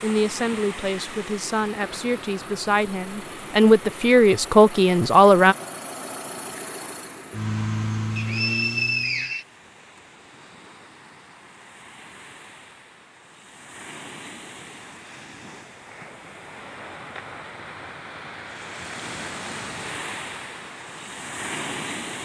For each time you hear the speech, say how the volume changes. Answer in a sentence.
You can hear the speech from 0.0 to 5.5 s, getting louder.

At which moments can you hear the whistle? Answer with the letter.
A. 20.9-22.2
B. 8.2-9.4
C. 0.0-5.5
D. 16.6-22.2
B.